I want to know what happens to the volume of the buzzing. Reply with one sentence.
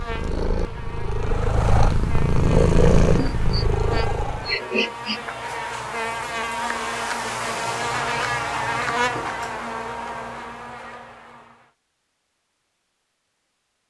The volume of the buzzing goes up, then down.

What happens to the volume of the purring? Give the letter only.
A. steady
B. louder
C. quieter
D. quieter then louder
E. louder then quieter
E.